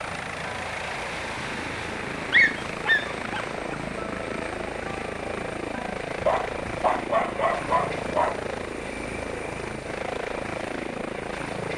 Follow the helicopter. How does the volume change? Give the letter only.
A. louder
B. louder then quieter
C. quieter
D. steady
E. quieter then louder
D.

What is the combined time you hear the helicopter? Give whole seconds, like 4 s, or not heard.
12 s.